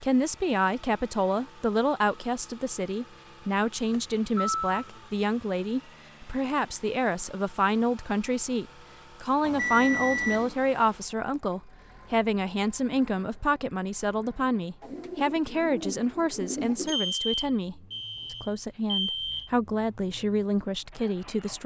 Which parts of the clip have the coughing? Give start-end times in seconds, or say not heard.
not heard.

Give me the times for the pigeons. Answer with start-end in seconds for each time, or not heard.
14.8-16.9.